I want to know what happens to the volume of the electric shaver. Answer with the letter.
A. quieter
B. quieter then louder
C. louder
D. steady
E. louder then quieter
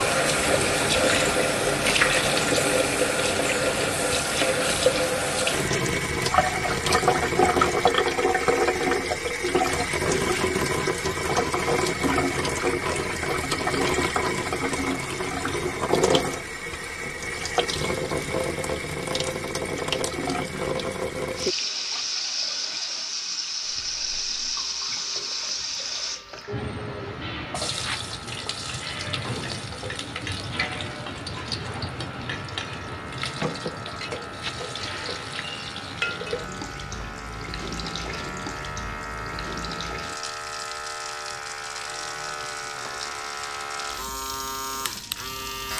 C.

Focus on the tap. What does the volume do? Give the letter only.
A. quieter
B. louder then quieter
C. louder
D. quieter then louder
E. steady
A.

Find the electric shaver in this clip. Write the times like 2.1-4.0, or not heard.
23.6-45.7.